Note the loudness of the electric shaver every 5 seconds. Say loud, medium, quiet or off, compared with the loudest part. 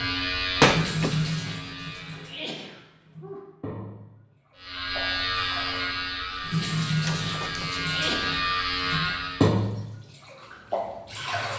loud, loud, off.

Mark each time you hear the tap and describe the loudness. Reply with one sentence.
The tap can be heard from 0.0 to 11.5 s, getting quieter then louder.